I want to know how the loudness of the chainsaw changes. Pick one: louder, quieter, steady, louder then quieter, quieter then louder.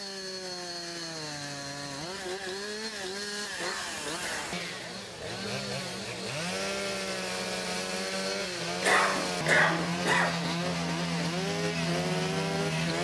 louder.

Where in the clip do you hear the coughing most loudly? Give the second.
10 s.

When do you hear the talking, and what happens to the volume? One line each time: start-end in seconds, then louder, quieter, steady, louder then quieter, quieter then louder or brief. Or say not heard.
not heard.